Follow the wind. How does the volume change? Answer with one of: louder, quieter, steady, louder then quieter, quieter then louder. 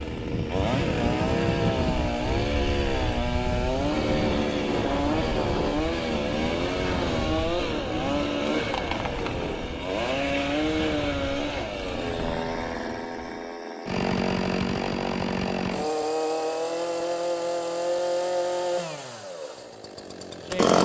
quieter.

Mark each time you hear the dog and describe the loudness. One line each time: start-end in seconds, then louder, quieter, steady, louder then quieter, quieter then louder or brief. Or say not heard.
not heard.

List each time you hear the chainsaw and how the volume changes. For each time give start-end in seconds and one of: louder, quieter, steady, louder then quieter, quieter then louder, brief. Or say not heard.
0.0-20.7 steady.